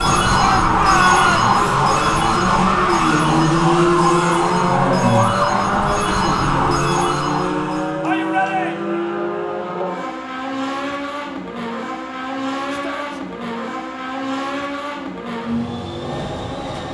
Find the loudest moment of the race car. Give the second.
4 s.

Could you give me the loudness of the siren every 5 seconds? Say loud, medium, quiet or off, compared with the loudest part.
loud, loud, off, off.